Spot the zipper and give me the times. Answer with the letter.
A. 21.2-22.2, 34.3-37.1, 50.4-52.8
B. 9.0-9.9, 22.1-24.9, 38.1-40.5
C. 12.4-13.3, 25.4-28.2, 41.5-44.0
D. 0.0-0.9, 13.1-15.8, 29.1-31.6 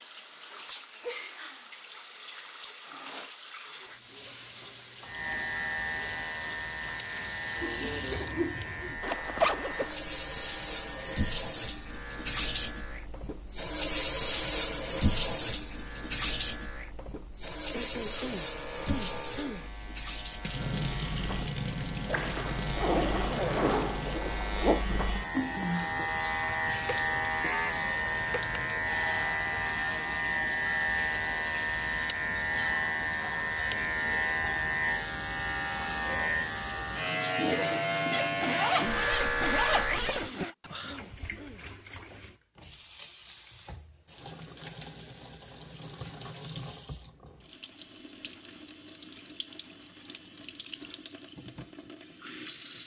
B.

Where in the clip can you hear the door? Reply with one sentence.
The door can't be heard in this clip.